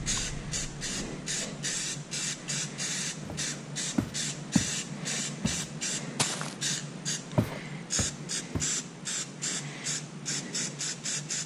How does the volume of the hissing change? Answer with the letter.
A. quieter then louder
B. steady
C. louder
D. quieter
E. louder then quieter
B.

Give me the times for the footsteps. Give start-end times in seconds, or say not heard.
3.2-4.8, 5.4-6.5, 7.3-8.7.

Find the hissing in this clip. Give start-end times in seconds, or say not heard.
0.0-11.4.